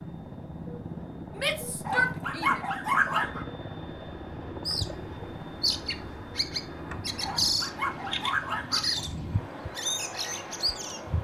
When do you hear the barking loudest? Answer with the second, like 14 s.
3 s.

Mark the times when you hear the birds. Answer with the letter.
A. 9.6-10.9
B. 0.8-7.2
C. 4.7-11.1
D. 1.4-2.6
C.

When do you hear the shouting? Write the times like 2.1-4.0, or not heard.
1.4-2.6.